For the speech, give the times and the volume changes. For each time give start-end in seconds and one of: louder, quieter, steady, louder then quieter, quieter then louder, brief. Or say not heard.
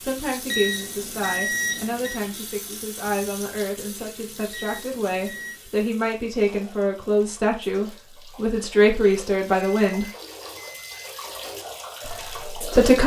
0.0-10.1 louder
12.1-13.0 brief.